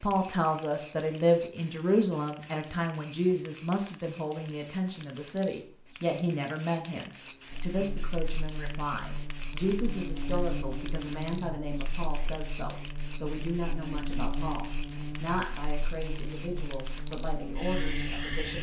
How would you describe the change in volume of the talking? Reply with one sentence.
The loudness of the talking goes down.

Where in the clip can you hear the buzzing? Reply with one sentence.
The buzzing can be heard from 7.5 to 18.5 s.